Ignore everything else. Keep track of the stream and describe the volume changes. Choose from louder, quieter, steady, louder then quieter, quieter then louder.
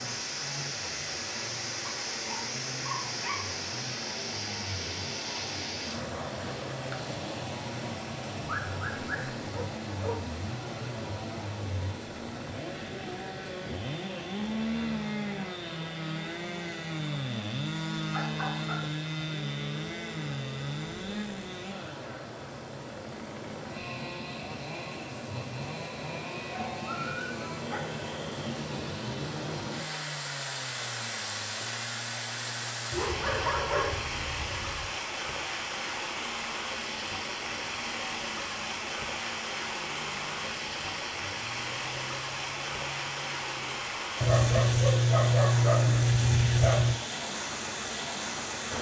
quieter then louder.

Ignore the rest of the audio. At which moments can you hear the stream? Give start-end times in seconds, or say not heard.
0.0-48.7.